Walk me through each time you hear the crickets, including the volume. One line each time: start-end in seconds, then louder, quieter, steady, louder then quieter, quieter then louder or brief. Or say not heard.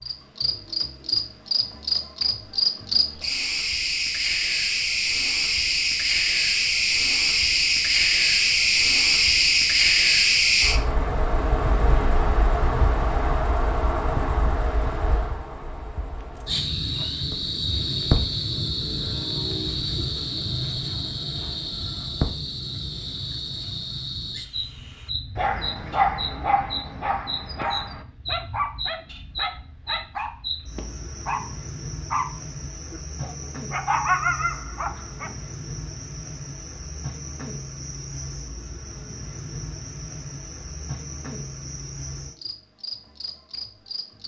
0.0-44.2 quieter.